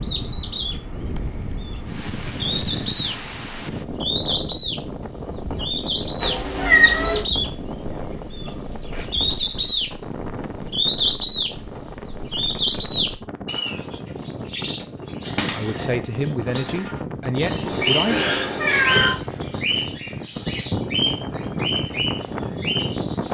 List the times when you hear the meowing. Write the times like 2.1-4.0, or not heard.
6.2-7.2, 17.6-19.1.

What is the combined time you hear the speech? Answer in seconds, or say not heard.
3 s.